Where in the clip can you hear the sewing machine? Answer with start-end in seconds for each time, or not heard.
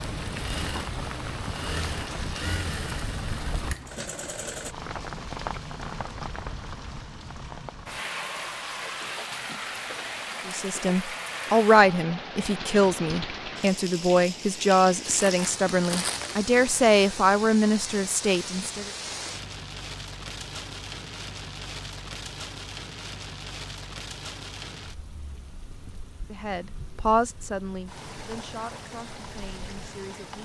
0.2-4.8.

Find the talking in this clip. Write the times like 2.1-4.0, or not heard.
10.4-18.9, 26.2-30.4.